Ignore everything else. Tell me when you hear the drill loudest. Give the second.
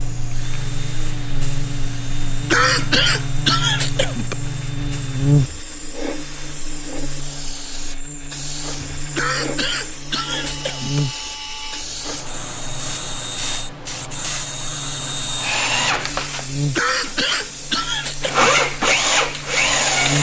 19 s.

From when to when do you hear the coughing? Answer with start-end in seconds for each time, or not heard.
2.5-4.3, 9.2-11.0, 16.8-18.6.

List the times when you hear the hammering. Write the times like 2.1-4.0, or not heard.
not heard.